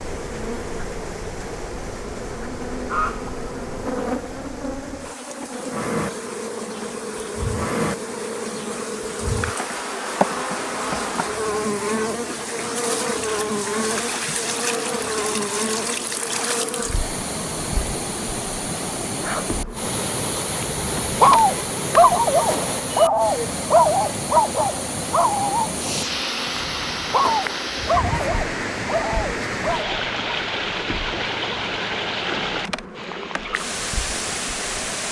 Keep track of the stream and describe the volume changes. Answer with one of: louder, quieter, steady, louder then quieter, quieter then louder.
louder.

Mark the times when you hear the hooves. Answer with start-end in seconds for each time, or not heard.
not heard.